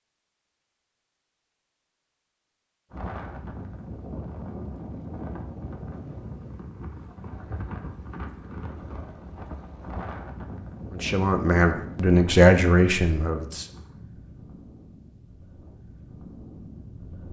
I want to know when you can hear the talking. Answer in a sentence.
The talking can be heard from 10.9 to 13.7 s.